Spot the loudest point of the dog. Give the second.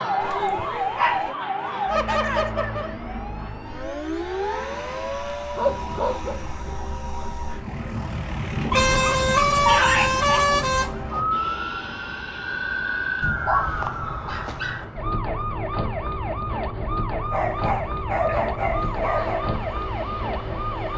10 s.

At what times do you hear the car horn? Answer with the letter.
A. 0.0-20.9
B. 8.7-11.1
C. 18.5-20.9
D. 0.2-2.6
B.